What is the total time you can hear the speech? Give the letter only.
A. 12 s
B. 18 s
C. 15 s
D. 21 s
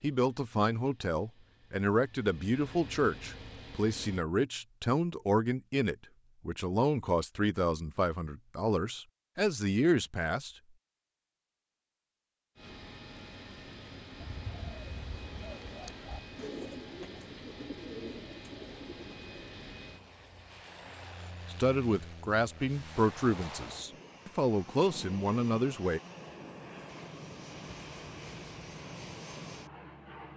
C.